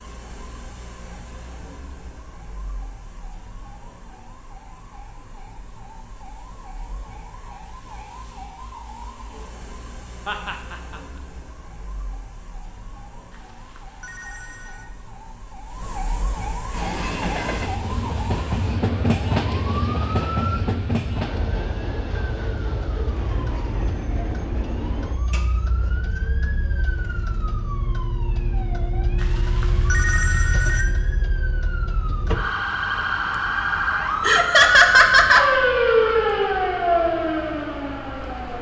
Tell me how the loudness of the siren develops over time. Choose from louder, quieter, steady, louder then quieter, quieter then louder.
louder.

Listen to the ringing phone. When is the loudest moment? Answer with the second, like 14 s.
30 s.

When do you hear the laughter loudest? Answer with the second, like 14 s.
35 s.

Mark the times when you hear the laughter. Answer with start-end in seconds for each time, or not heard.
10.2-11.0, 34.2-35.5.